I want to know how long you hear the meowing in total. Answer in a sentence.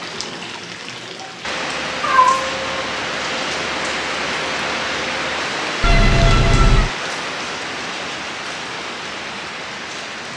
You can hear the meowing for 2 seconds altogether.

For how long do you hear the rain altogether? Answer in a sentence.
The rain can be heard for 10 seconds in total.